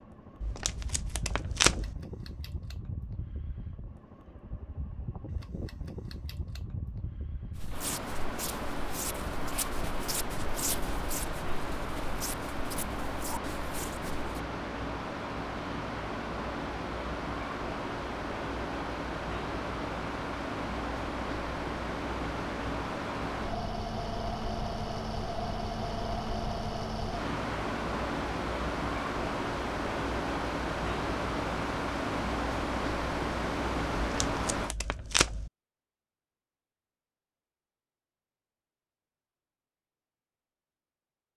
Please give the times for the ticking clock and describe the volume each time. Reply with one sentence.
The ticking clock can't be heard in this clip.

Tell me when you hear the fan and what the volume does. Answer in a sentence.
You can hear the fan from 0.0 to 34.8 s, getting louder.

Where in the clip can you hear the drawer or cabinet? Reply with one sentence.
You can't hear the drawer or cabinet here.